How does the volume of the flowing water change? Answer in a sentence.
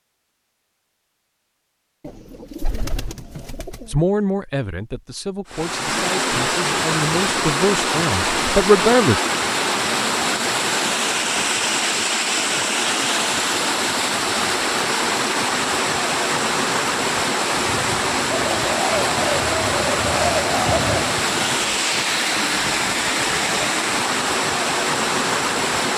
The loudness of the flowing water stays about the same.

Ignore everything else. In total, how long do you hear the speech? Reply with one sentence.
You can hear the speech for 5 seconds altogether.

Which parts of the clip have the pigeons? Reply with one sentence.
The pigeons can be heard from 2.0 to 3.9 s and from 18.3 to 21.1 s.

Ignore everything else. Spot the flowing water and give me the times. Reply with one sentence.
You can hear the flowing water from 5.5 to 25.9 s.